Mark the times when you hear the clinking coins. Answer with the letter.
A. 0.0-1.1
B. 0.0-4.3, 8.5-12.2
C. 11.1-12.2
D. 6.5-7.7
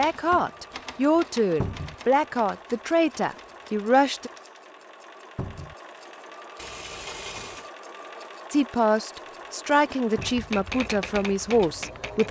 D.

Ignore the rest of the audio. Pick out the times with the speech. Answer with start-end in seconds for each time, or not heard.
0.0-4.3, 8.5-12.2.